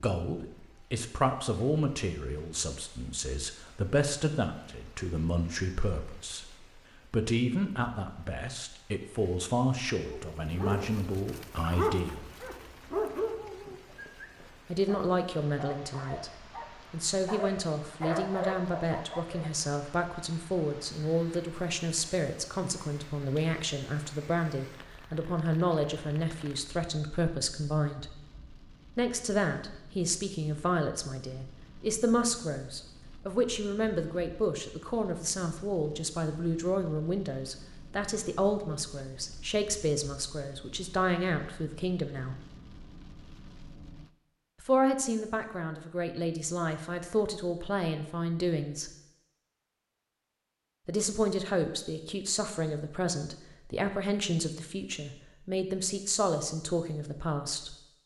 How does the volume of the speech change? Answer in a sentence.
The volume of the speech stays about the same.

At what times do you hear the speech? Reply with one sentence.
The speech can be heard from 0.0 to 12.2 s, from 14.7 to 28.1 s, from 28.9 to 42.4 s, from 44.6 to 48.9 s and from 50.9 to 57.8 s.